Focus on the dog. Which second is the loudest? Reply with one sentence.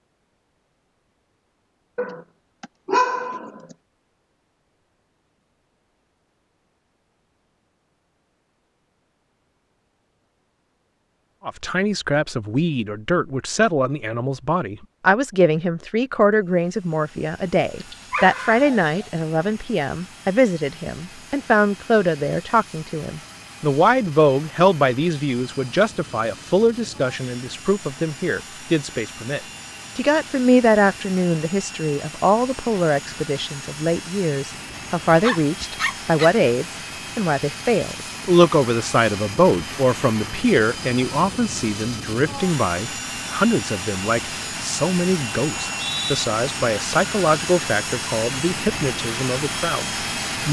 The volume of the dog peaks at 3 seconds.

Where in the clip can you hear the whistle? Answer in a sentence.
The whistle can be heard from 45.5 to 46.2 s.